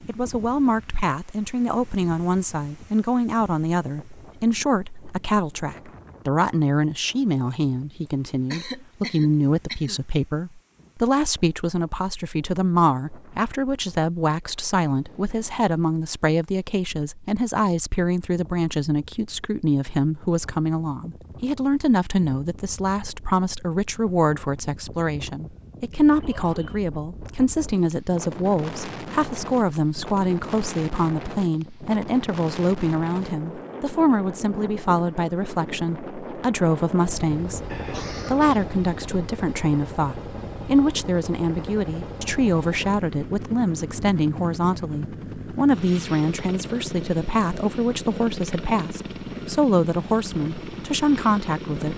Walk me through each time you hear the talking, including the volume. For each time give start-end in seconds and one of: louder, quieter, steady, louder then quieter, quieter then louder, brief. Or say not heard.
0.1-51.9 steady.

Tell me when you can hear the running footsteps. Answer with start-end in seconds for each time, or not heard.
not heard.